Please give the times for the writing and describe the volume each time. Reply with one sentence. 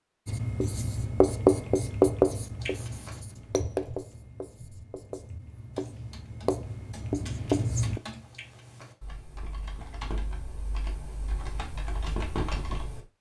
You can hear the writing from 0.2 to 8.0 s, getting quieter then louder.